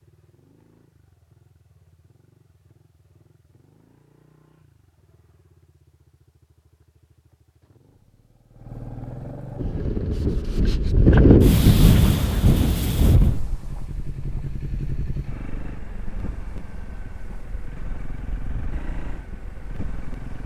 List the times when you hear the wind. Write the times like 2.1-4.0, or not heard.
9.6-20.4.